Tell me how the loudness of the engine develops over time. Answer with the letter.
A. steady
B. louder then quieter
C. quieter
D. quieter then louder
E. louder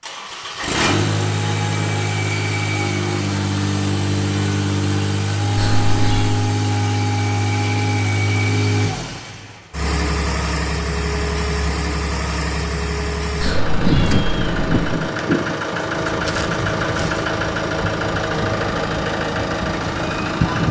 A.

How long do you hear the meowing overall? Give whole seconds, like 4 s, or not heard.
2 s.